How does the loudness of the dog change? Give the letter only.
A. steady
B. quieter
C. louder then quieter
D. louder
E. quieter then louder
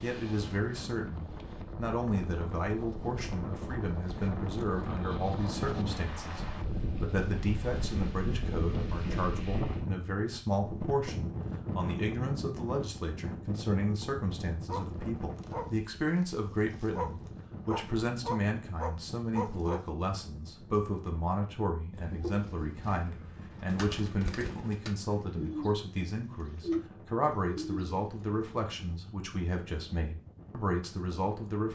D.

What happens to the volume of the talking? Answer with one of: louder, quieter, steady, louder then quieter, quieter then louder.
steady.